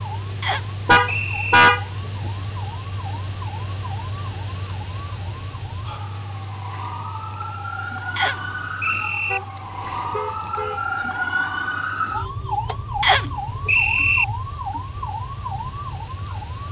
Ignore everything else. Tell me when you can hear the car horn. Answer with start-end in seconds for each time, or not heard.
0.8-1.8, 9.3-10.8.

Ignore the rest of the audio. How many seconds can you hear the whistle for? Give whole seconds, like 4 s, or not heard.
4 s.